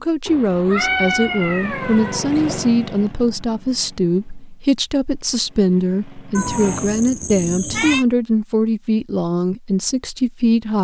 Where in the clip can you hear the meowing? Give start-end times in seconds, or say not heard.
0.2-2.7, 6.3-8.1.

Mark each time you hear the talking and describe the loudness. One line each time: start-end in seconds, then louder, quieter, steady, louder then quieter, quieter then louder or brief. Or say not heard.
0.0-10.7 steady.